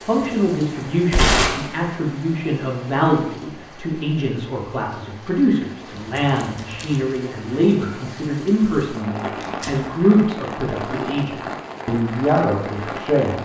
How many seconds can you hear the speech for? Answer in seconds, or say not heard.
13 s.